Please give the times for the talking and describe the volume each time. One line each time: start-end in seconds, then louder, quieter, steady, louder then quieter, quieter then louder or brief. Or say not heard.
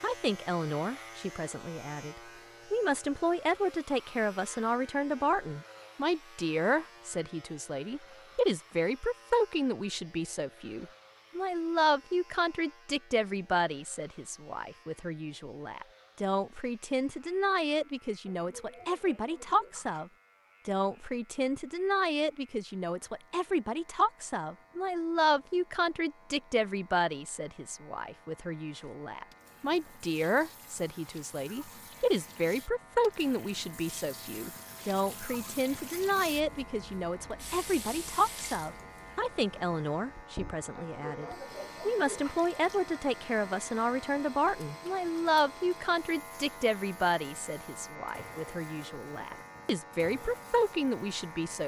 0.0-51.6 steady.